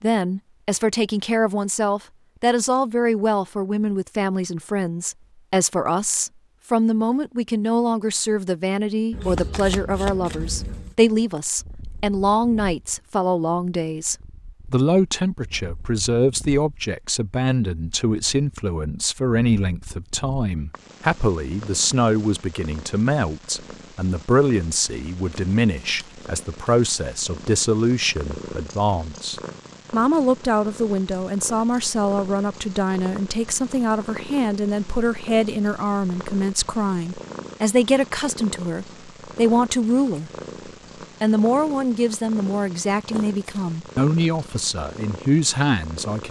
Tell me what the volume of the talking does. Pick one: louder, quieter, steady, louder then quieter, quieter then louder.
steady.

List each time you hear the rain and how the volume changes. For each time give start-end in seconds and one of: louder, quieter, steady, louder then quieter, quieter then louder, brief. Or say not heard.
not heard.